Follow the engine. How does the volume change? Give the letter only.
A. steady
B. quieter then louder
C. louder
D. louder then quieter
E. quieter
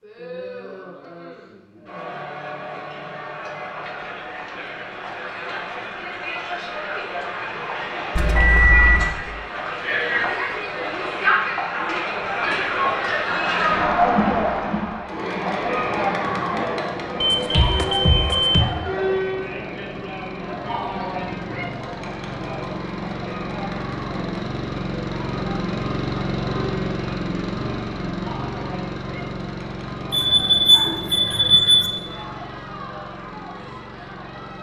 D.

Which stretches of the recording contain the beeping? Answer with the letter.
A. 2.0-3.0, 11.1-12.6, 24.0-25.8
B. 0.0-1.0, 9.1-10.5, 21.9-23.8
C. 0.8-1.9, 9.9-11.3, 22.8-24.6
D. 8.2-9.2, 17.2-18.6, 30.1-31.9
D.